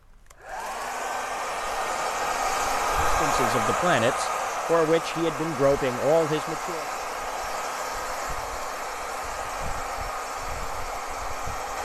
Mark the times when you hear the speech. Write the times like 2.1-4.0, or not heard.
3.0-6.8.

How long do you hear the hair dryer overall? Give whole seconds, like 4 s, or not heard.
12 s.